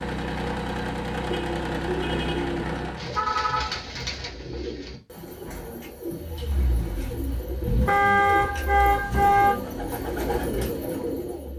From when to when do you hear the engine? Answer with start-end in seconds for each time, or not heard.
0.0-3.2, 6.0-11.5.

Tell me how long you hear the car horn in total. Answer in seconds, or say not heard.
4 s.